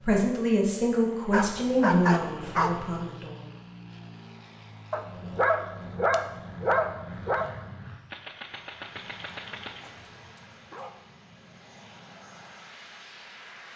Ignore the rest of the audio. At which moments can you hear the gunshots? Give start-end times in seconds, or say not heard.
8.1-9.9.